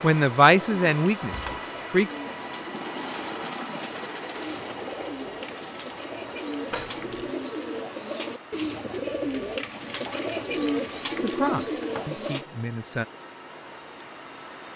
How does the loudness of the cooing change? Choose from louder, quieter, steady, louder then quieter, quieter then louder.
louder.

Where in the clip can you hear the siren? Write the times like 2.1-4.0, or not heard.
not heard.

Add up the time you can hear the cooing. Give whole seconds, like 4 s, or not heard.
12 s.